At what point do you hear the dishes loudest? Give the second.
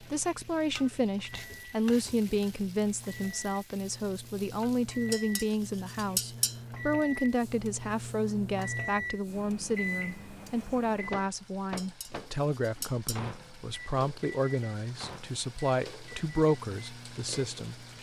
6 s.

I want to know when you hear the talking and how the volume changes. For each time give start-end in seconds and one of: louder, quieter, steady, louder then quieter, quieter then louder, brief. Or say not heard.
0.0-17.9 steady.